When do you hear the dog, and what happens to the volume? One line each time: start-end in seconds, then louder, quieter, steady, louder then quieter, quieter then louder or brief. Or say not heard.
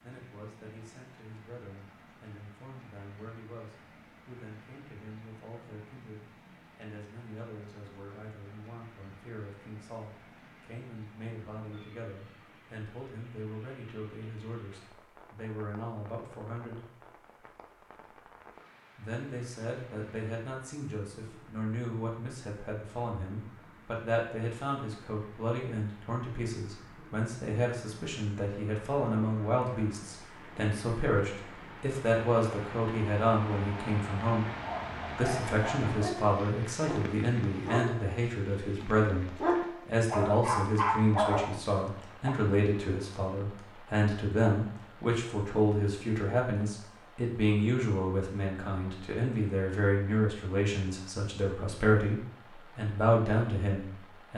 34.5-42.4 louder.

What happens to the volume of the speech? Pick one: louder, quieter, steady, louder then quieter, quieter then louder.
louder.